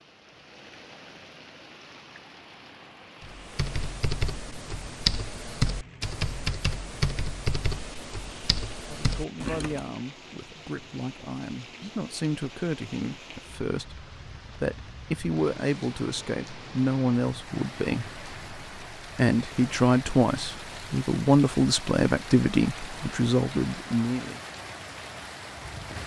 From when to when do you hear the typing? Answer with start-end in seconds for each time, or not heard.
3.2-9.8.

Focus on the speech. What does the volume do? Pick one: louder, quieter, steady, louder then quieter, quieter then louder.
louder.